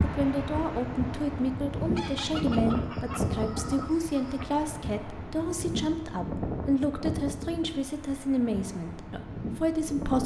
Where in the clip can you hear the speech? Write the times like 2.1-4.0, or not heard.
0.0-10.2.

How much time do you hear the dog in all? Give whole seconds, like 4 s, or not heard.
not heard.